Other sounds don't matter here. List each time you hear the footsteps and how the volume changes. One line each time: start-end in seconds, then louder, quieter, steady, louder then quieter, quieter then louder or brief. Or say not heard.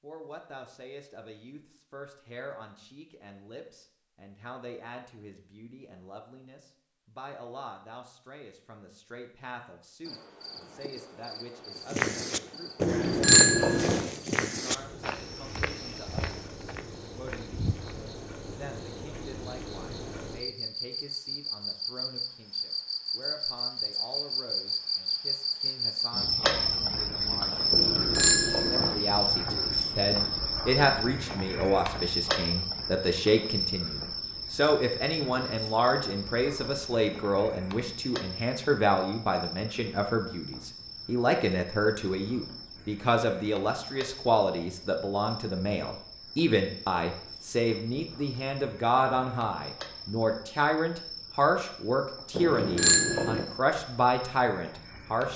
11.8-18.1 quieter.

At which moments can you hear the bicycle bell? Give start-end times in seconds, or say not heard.
12.8-14.0, 27.7-28.9, 52.4-53.5.